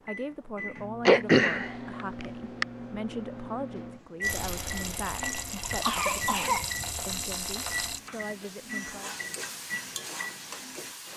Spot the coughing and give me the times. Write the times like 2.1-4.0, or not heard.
1.1-2.6, 5.6-7.2.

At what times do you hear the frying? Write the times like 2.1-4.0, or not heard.
4.2-11.1.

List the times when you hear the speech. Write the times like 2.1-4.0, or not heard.
0.1-9.2.